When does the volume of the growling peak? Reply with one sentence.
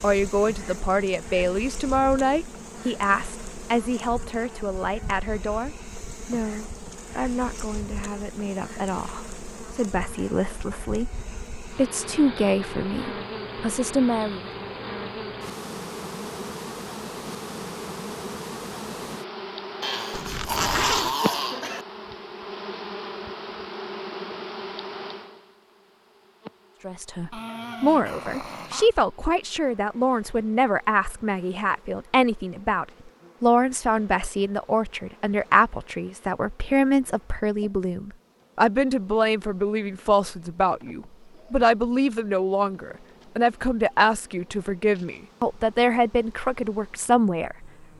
The volume of the growling peaks at 21 seconds.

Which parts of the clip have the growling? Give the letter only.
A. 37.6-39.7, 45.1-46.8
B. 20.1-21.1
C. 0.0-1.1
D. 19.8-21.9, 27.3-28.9
D.